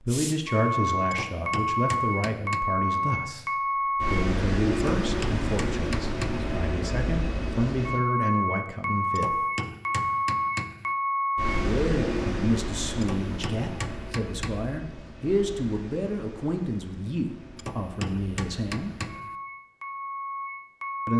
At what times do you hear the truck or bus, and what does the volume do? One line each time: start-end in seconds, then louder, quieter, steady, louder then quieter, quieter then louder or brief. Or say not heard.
0.0-21.1 quieter.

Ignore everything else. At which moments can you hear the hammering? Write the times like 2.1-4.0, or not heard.
1.1-2.6, 5.0-6.5, 9.2-10.9, 13.0-14.8, 17.6-19.4.